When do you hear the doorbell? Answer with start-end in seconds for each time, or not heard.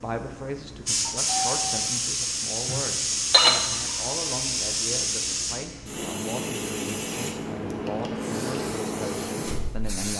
1.1-1.9.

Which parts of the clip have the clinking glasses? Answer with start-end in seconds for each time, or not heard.
2.6-3.8.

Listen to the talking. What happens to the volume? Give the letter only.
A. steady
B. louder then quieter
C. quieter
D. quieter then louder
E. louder
A.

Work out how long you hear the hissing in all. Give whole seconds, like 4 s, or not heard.
10 s.